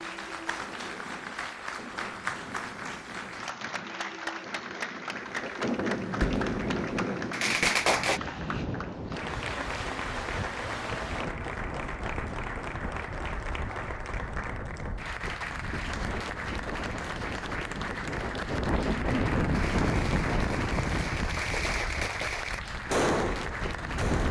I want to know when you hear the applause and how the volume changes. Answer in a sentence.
The applause can be heard from 0.0 to 24.2 s, at a steady volume.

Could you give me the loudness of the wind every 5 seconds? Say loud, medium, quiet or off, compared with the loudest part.
quiet, loud, medium, loud, loud.